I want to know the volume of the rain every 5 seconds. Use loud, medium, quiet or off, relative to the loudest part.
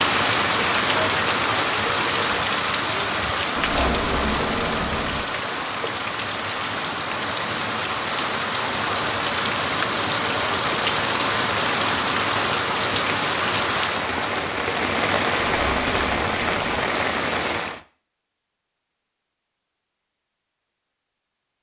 loud, loud, loud, loud, off.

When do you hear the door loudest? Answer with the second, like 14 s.
4 s.